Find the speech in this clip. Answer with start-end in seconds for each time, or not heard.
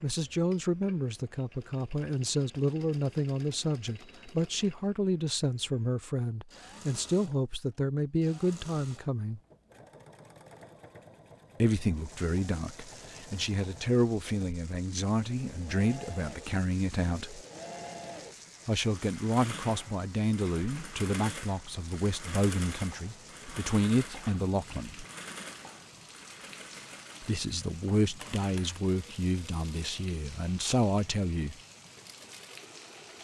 0.0-9.4, 11.6-17.4, 18.6-25.1, 27.2-31.6.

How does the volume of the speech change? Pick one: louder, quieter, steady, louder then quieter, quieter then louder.
steady.